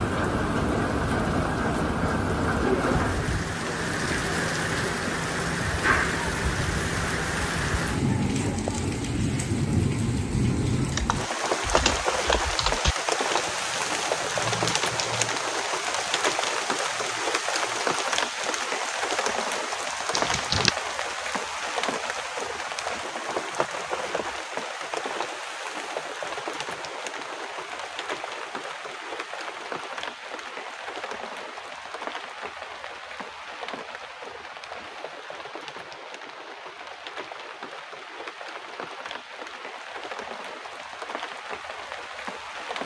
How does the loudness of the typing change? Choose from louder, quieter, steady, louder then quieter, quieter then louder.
quieter.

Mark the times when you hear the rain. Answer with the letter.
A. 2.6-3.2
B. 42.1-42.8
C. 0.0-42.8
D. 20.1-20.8
C.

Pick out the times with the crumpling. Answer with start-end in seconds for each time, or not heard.
20.1-20.8.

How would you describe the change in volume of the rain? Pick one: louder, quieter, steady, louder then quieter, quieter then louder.
quieter.